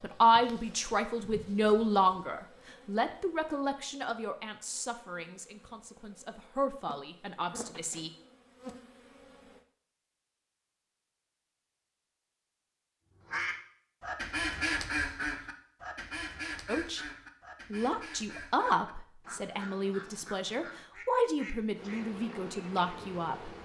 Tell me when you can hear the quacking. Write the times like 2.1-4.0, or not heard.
13.2-22.1.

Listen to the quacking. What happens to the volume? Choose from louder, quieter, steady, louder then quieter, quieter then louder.
quieter.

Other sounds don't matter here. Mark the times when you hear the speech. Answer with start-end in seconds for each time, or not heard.
0.0-8.1, 16.6-17.1, 17.7-23.5.